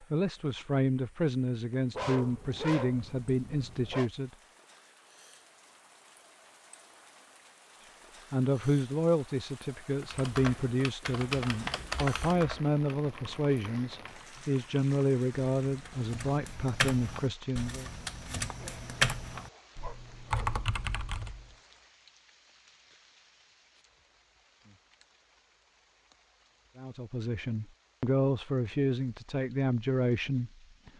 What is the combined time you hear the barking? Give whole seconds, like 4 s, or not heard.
4 s.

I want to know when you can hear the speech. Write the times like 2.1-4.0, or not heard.
0.0-4.3, 7.8-17.9, 26.8-30.9.